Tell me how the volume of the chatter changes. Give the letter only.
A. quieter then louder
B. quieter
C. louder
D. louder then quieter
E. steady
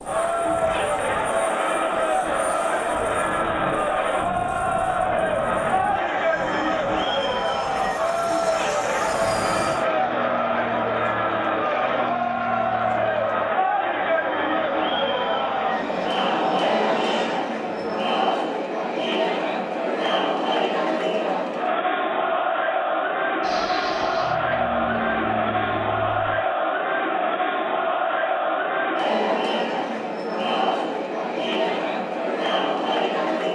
E.